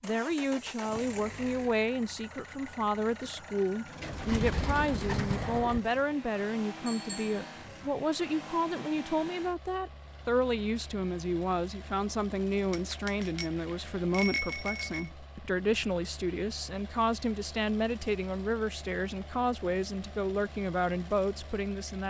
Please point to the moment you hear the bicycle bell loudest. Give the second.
14 s.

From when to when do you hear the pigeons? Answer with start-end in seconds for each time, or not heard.
4.0-5.8.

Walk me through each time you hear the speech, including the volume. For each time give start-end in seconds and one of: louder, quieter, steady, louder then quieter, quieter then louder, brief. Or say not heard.
0.0-22.0 steady.